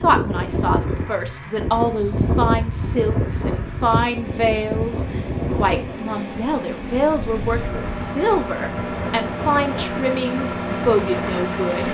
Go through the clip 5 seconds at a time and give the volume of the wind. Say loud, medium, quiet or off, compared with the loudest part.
loud, medium, medium.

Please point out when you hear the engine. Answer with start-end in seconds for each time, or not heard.
0.1-11.8.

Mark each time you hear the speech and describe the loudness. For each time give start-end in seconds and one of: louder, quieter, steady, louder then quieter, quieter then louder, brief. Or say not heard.
0.0-11.8 steady.